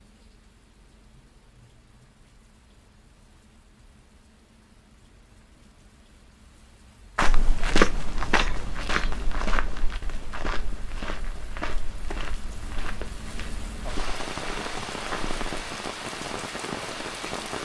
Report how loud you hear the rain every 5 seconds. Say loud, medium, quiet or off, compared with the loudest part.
quiet, quiet, medium, loud.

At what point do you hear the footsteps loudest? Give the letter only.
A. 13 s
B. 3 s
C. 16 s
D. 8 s
D.